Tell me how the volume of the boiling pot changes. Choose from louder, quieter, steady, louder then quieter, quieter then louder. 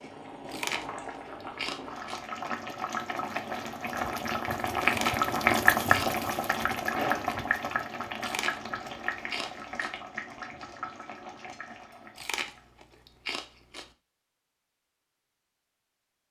louder then quieter.